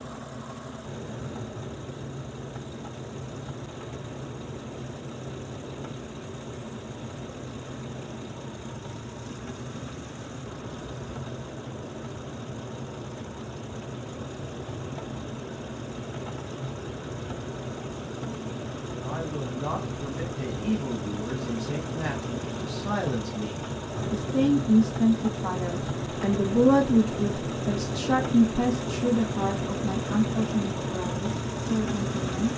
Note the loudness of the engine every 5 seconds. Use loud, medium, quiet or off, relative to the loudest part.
medium, medium, medium, medium, loud, loud, loud.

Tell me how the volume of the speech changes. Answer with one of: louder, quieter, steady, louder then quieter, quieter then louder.
louder then quieter.